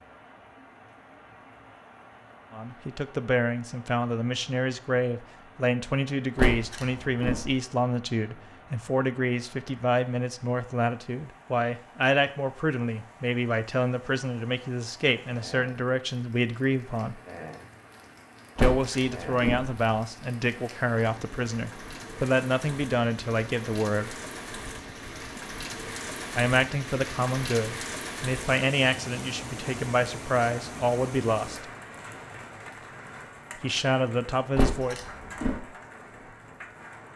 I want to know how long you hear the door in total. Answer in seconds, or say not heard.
3 s.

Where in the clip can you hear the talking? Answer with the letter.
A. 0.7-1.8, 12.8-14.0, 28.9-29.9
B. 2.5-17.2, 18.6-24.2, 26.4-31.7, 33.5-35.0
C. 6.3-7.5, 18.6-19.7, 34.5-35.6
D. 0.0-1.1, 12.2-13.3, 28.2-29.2
B.